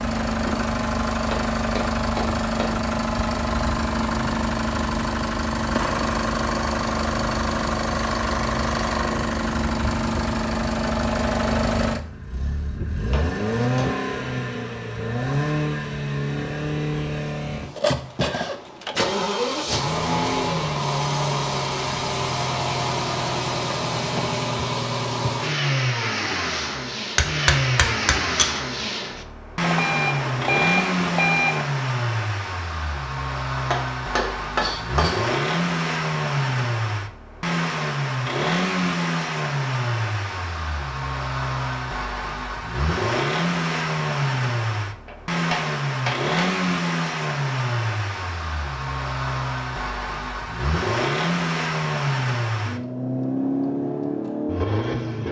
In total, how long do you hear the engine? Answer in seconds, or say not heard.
55 s.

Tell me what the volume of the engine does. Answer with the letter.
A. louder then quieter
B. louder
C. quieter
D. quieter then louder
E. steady
E.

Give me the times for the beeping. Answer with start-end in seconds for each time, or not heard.
29.6-31.6.